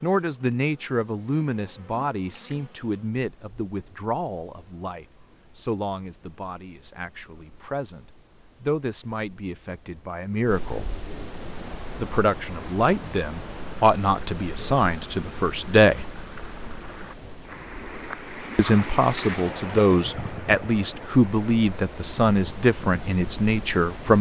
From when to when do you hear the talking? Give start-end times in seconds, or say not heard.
0.0-10.9, 11.9-16.1, 18.6-24.1.